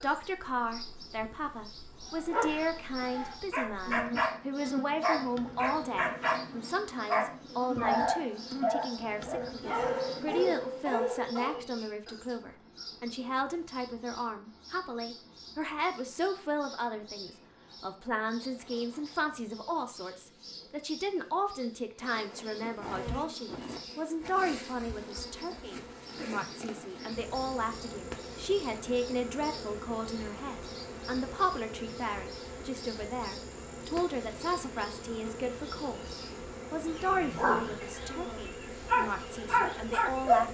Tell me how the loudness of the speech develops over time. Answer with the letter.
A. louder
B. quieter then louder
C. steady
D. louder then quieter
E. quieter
C.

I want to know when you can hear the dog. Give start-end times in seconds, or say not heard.
2.1-4.3, 5.0-11.6, 37.0-40.4.